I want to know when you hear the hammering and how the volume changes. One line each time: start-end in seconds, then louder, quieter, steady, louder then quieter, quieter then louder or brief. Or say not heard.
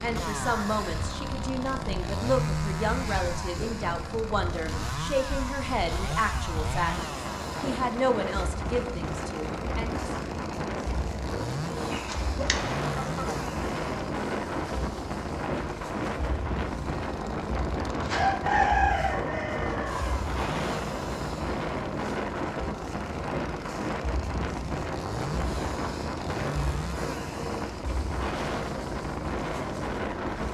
not heard.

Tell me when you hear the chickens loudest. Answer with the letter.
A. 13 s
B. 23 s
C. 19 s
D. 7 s
C.